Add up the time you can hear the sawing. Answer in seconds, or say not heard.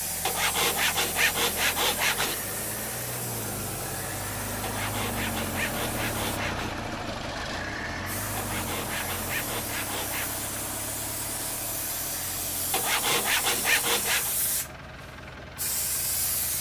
8 s.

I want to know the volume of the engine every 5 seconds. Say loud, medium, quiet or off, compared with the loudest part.
loud, loud, medium, medium.